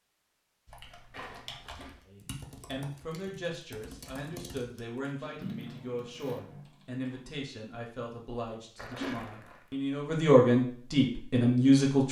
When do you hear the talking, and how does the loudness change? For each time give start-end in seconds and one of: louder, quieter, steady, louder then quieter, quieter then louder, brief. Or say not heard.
2.0-12.0 louder.